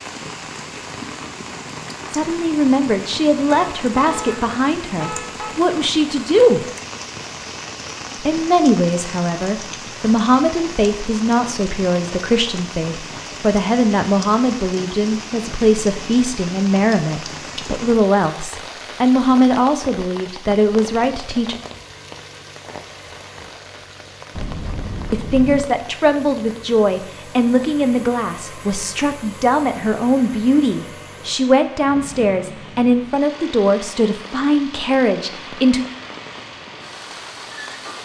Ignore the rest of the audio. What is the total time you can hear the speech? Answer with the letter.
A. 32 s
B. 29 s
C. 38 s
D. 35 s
B.